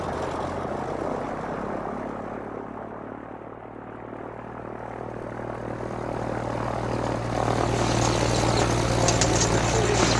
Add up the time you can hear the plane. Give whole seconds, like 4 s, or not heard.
10 s.